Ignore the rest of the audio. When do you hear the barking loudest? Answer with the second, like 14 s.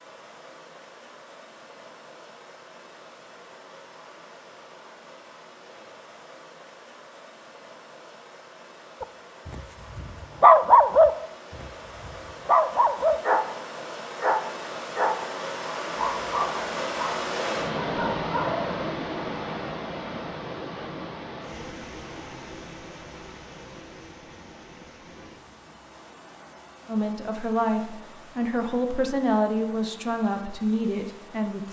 11 s.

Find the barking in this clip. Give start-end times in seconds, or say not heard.
9.0-13.5, 14.2-15.2, 15.9-18.9.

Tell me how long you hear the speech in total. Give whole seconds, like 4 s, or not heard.
5 s.